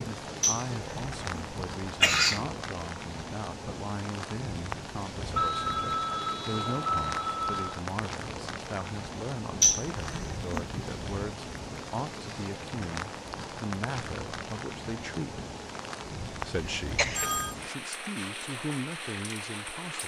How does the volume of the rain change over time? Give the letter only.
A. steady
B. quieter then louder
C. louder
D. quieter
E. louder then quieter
A.